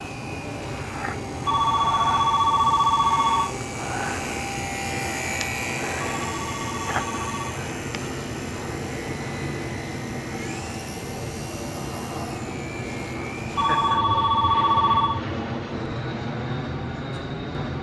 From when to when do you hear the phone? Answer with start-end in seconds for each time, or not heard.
1.4-3.6, 6.0-7.6, 13.6-15.2.